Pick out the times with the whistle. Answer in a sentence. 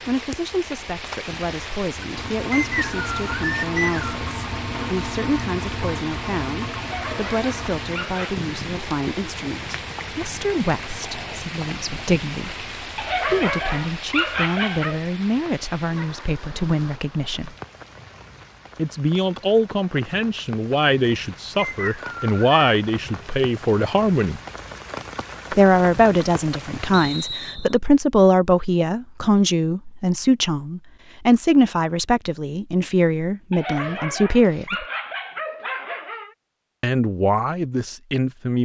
The whistle can be heard from 2.5 to 4.2 s, from 21.6 to 22.6 s and from 26.9 to 27.8 s.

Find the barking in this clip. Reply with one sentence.
You can hear the barking from 6.8 to 8.4 s, from 12.9 to 15.0 s and from 33.5 to 36.4 s.